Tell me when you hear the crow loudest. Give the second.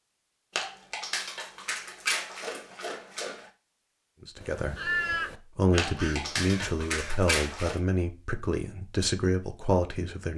5 s.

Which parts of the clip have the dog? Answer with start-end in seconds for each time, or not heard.
0.6-3.5, 5.8-7.8.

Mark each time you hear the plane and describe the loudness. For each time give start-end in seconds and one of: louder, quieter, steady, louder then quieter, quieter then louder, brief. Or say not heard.
not heard.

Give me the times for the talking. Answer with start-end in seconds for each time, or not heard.
4.2-10.3.